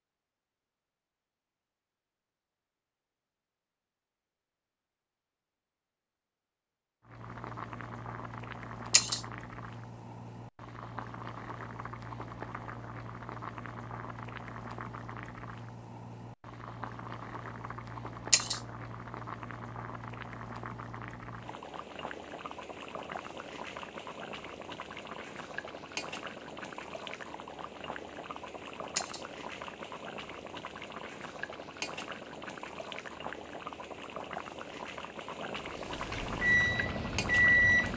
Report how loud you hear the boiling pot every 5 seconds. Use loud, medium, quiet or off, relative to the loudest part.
off, loud, loud, loud, loud, loud, loud, loud.